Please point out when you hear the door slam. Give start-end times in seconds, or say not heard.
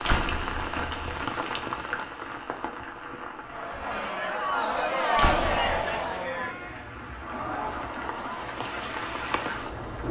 0.0-1.2, 5.2-5.8.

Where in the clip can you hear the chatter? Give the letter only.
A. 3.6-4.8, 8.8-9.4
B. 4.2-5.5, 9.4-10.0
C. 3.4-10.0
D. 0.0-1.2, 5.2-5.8
C.